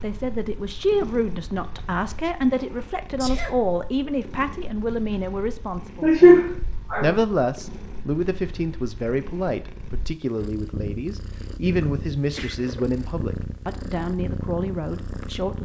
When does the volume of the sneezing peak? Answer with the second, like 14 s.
6 s.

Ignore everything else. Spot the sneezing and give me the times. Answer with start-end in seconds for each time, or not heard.
2.9-3.5, 6.0-7.2, 11.8-12.6.